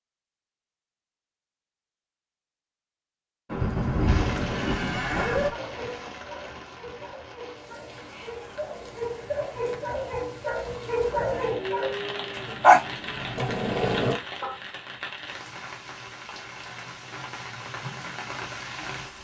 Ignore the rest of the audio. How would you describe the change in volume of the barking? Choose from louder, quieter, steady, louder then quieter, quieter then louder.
louder.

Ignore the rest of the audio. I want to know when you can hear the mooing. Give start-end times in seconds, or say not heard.
3.5-5.5, 11.3-13.3.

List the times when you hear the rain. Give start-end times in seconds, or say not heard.
4.0-19.1.